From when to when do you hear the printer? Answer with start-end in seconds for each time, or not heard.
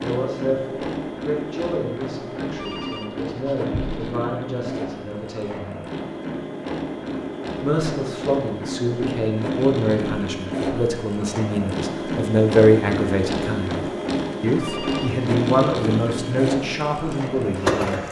0.0-18.0.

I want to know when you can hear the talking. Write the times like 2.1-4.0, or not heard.
0.0-5.9, 7.6-18.0.